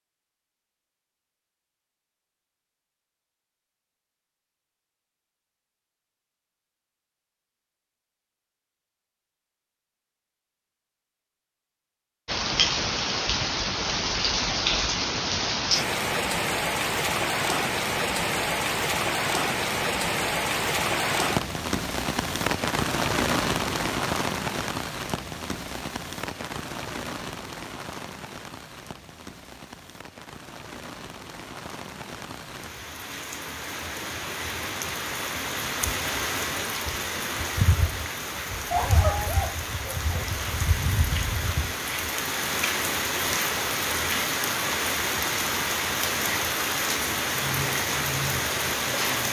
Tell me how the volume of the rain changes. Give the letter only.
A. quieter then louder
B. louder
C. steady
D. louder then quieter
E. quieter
A.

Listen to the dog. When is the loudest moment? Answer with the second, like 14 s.
39 s.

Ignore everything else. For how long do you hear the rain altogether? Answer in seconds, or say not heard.
37 s.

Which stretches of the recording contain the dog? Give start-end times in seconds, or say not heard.
38.7-40.2.